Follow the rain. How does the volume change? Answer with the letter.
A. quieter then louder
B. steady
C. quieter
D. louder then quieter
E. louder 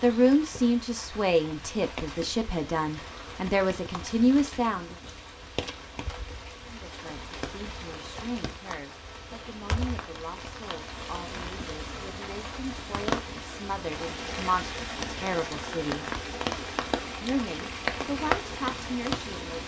E.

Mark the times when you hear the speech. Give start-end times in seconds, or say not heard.
0.0-5.0, 6.7-16.1, 17.2-19.6.